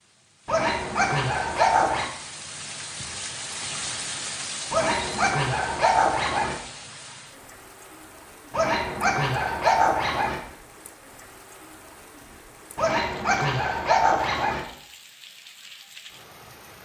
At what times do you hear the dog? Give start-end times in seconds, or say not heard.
0.5-2.1, 4.7-6.6, 8.5-10.4, 12.8-14.7.